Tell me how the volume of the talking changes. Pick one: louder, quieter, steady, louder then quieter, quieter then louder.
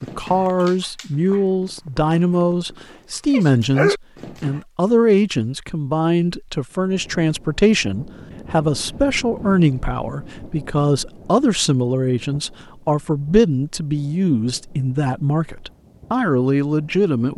steady.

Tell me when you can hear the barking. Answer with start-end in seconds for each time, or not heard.
0.0-4.6.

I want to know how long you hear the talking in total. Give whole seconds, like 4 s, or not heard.
17 s.